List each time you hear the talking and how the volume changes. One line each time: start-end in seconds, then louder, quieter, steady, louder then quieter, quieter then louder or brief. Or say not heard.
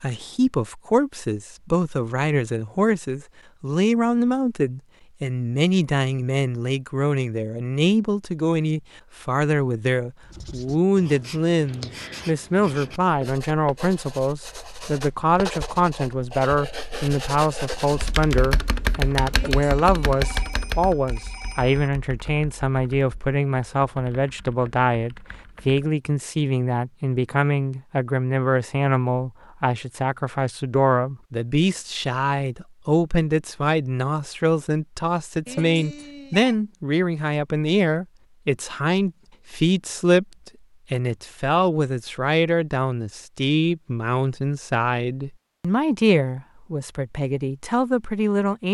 0.0-48.7 steady.